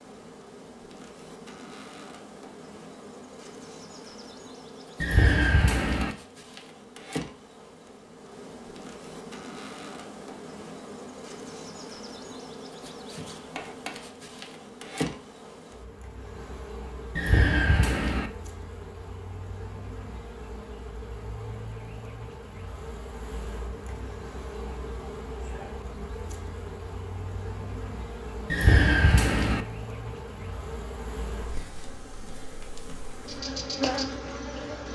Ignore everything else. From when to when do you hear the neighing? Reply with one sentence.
You can hear the neighing from 5.0 to 6.2 s, from 17.1 to 18.3 s and from 28.5 to 29.6 s.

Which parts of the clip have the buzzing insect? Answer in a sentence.
The buzzing insect can be heard from 0.0 to 34.8 s.